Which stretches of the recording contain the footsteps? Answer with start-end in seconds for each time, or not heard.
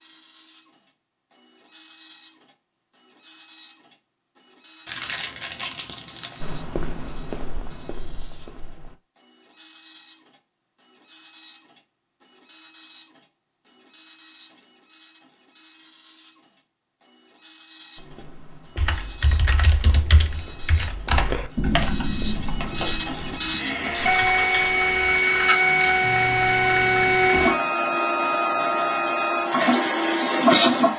6.4-8.9, 17.9-23.4.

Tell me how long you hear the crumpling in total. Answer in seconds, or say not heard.
2 s.